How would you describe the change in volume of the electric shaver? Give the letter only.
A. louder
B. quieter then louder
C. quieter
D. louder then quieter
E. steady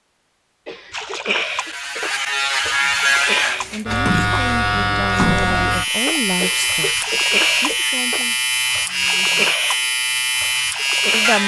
E.